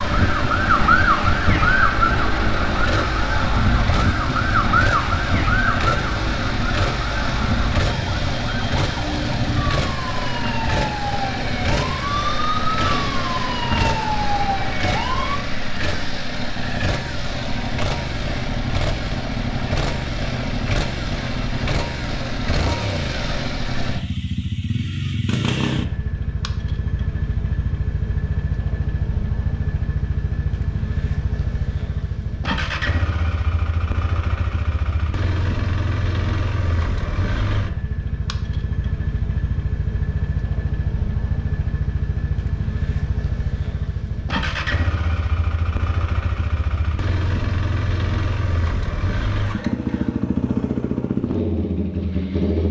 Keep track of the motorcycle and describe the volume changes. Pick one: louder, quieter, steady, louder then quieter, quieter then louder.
steady.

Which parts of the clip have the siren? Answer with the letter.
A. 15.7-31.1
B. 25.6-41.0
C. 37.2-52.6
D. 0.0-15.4
D.